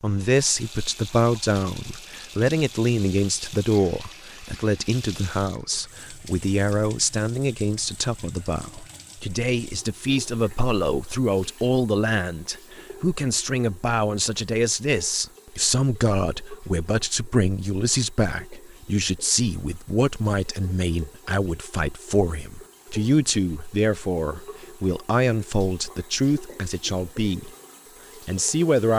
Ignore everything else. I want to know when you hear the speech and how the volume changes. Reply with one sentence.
The speech can be heard from 0.0 to 27.5 s, at a steady volume; and briefly from 28.2 to 28.9 s.